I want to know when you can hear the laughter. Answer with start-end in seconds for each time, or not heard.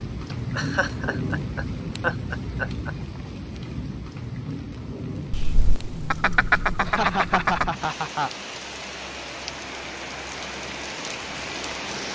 0.3-2.9, 6.8-8.4.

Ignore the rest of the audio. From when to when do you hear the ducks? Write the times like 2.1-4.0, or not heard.
5.3-7.7.